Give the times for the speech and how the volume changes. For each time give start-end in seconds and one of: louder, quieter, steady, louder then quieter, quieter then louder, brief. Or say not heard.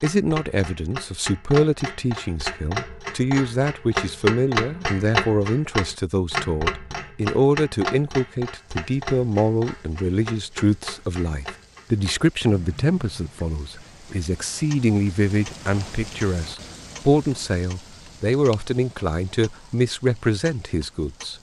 0.0-21.3 steady.